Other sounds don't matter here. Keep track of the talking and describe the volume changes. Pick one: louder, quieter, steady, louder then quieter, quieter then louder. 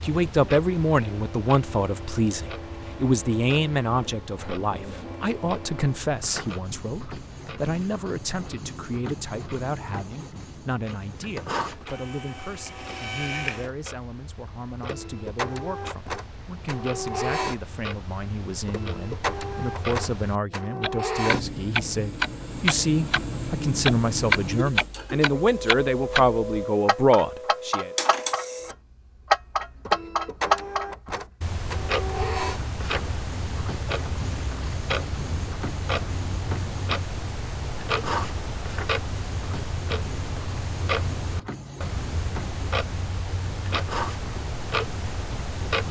quieter then louder.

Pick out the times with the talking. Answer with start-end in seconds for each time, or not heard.
0.0-27.9.